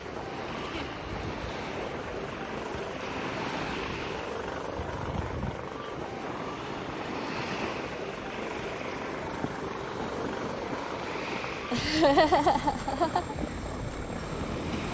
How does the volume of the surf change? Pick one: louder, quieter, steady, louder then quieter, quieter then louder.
steady.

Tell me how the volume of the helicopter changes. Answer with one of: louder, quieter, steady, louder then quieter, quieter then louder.
steady.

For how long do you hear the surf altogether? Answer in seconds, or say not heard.
15 s.